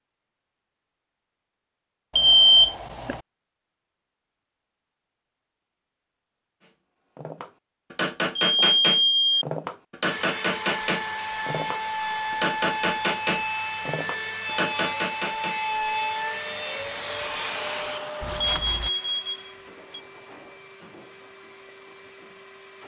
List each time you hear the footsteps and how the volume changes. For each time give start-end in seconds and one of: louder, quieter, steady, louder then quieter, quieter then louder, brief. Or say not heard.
not heard.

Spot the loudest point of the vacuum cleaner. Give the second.
18 s.